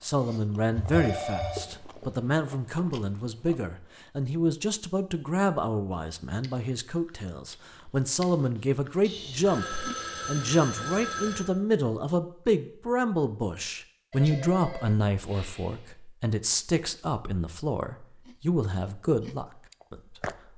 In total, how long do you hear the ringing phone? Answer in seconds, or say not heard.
5 s.